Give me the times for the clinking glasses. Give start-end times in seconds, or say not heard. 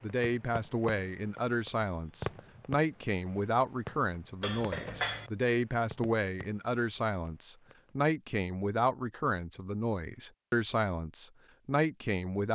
4.4-5.3.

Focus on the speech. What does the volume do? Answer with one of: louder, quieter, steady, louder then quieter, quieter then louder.
steady.